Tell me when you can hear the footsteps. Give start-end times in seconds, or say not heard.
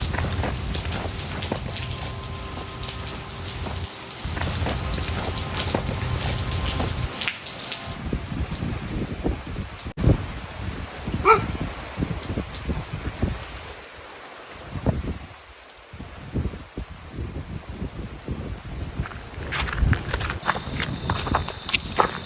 0.0-7.1, 18.9-22.2.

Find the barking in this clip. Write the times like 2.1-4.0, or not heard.
10.8-11.4.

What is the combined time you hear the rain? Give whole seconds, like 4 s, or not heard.
22 s.